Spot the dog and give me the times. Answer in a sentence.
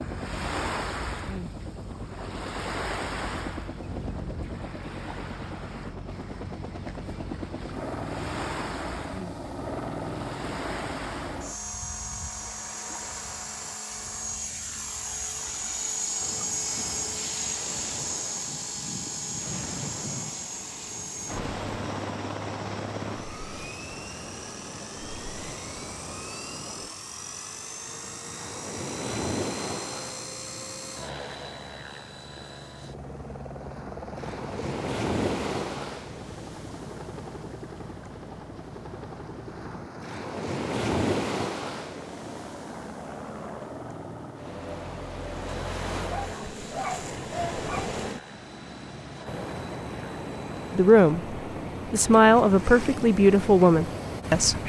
You can hear the dog from 46.1 to 47.9 s.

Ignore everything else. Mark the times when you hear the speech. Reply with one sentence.
You can hear the speech from 50.8 to 54.6 s.